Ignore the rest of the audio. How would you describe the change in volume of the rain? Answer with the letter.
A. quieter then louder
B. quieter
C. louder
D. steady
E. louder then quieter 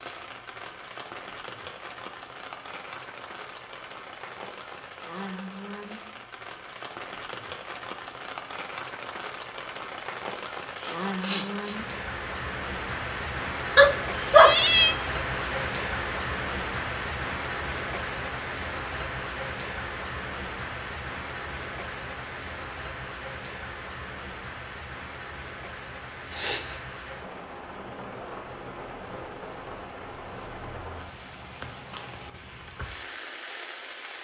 E.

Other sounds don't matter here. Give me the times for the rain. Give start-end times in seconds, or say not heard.
0.0-34.1.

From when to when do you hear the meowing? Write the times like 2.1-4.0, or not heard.
13.8-14.9.